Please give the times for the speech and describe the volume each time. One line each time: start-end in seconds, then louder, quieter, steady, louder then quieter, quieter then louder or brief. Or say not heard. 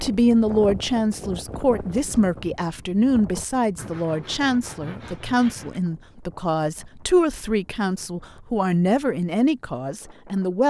0.0-10.6 steady.